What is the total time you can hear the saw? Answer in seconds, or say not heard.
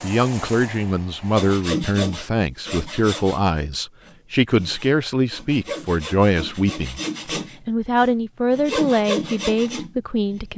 9 s.